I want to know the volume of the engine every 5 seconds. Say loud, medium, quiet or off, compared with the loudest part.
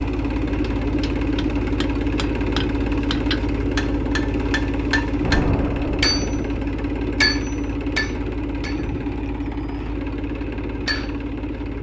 loud, loud, medium.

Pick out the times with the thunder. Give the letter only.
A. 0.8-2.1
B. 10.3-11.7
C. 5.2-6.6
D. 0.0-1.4
C.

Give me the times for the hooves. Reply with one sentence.
The hooves can't be heard in this clip.